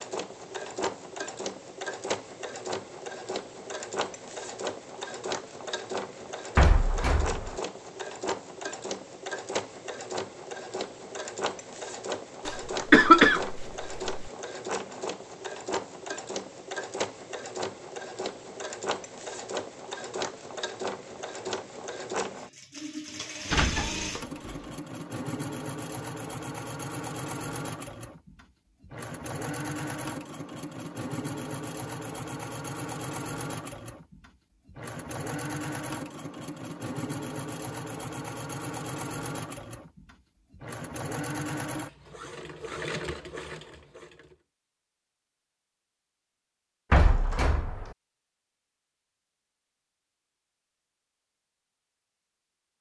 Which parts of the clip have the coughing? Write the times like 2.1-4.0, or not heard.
12.4-14.2.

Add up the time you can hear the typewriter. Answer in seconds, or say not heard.
not heard.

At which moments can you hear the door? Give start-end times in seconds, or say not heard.
6.5-7.6, 23.5-24.6, 46.9-48.0.